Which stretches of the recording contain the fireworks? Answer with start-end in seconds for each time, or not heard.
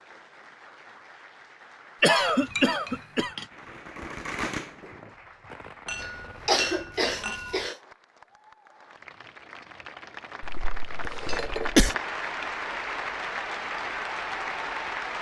3.5-6.6.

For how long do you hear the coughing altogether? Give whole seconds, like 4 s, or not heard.
5 s.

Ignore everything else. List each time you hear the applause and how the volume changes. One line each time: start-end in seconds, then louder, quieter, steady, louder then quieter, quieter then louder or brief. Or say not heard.
0.0-15.1 louder.